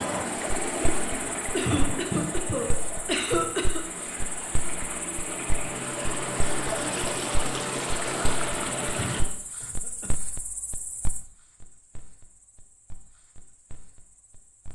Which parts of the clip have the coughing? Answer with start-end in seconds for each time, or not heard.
1.5-4.0, 8.9-10.1.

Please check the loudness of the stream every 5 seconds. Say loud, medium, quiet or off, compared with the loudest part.
loud, loud, off.